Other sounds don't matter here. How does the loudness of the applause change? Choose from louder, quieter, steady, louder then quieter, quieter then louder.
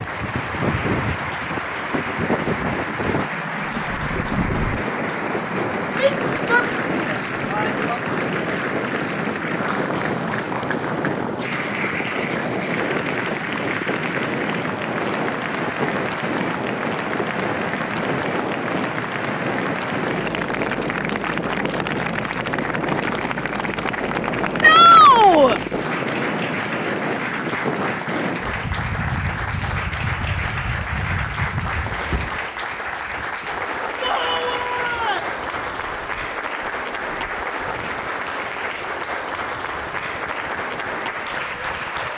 steady.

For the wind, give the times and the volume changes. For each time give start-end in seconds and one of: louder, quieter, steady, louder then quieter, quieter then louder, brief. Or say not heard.
0.0-42.1 quieter.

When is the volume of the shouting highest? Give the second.
25 s.